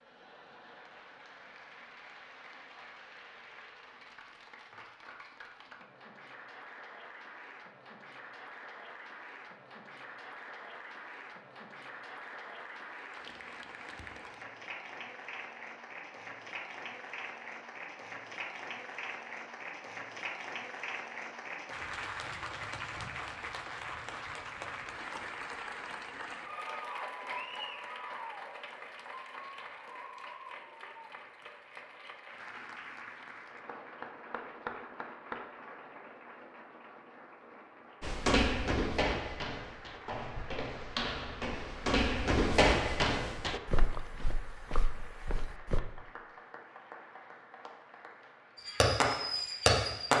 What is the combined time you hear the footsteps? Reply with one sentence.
The footsteps can be heard for 8 seconds in total.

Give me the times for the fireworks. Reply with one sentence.
You can hear the fireworks from 48.5 to 50.1 s.